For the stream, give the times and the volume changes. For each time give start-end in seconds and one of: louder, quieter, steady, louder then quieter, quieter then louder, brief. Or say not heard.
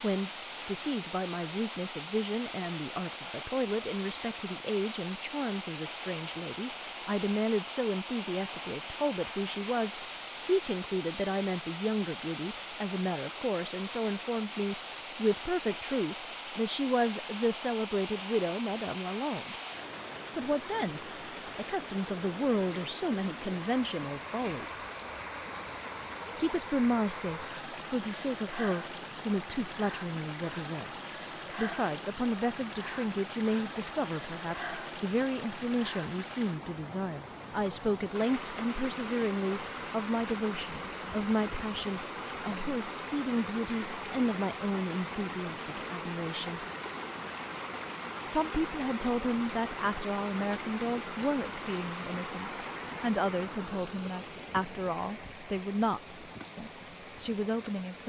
0.0-58.0 steady.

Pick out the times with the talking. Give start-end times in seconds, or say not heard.
0.0-19.6, 20.4-24.8, 26.4-46.6, 48.2-58.0.